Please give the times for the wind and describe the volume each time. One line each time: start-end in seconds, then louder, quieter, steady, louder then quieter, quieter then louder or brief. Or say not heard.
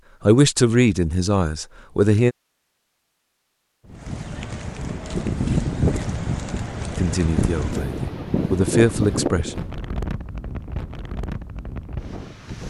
3.9-12.6 quieter.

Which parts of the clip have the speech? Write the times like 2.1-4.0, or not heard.
0.2-2.4, 7.0-9.7.